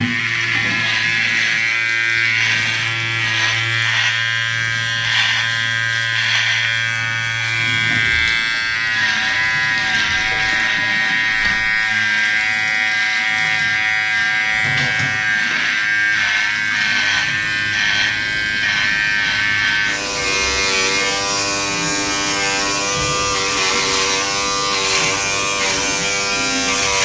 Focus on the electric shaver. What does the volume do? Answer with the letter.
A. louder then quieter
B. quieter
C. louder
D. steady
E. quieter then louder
D.